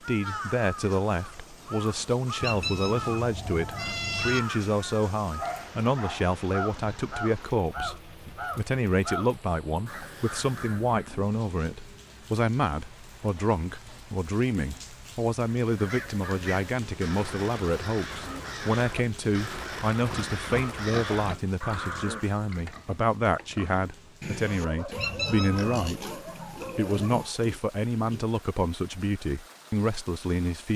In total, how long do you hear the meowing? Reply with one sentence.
The meowing can be heard for 3 seconds in total.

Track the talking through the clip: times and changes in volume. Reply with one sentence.
You can hear the talking from 0.1 to 30.7 s, at a steady volume.